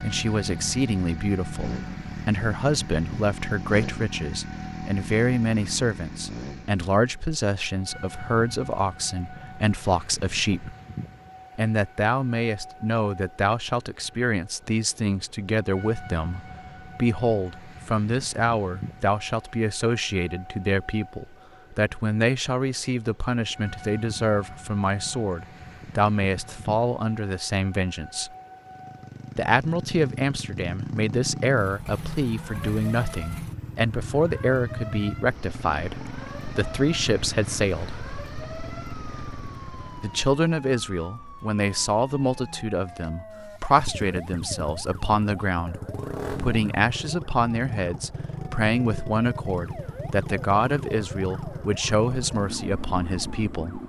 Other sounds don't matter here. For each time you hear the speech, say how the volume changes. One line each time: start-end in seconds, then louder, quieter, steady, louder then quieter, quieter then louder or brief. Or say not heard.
0.0-10.8 steady
11.6-28.3 steady
29.4-38.0 steady
40.0-53.8 steady.